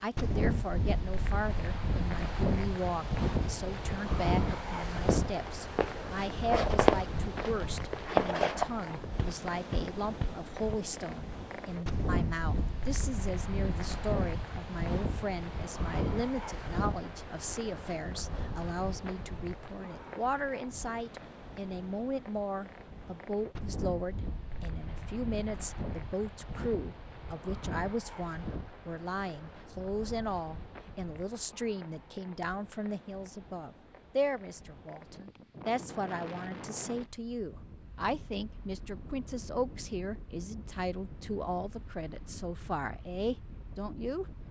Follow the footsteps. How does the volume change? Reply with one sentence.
The volume of the footsteps goes up, then down.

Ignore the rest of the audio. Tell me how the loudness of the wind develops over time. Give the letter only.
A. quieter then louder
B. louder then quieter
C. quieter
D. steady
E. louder
C.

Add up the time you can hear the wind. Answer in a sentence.
You can hear the wind for 44 seconds altogether.